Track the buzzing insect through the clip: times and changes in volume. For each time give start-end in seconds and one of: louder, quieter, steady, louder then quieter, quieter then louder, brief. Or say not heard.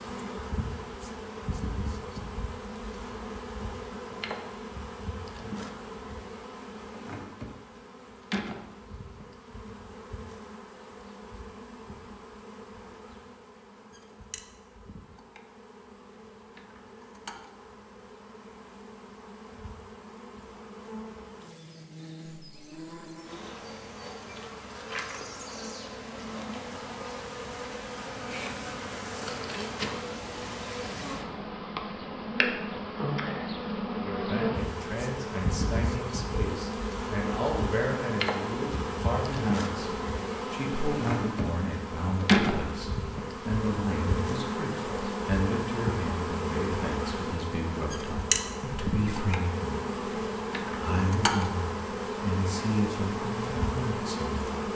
0.0-54.6 quieter then louder.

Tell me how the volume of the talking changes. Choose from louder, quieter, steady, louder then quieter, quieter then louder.
steady.